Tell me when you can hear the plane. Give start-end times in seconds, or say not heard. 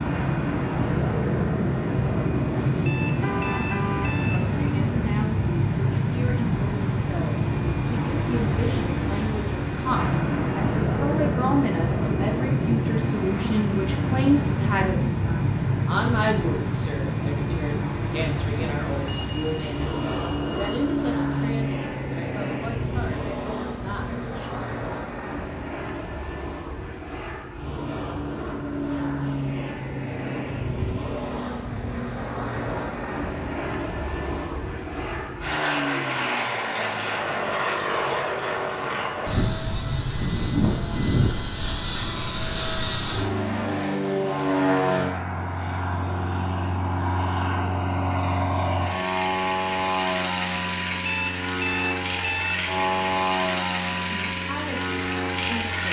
0.0-55.8.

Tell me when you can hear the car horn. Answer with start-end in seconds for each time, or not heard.
2.5-4.2.